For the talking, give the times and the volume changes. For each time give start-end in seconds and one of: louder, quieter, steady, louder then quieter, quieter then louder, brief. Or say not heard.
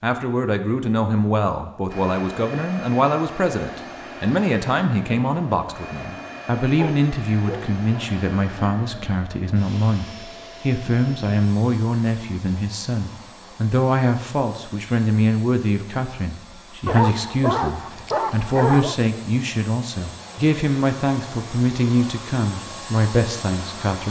0.0-24.0 steady.